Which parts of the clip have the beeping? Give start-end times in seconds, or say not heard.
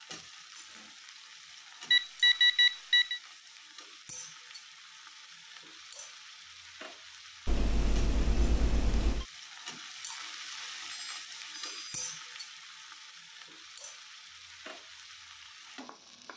1.9-3.2, 7.5-9.2, 10.9-12.1.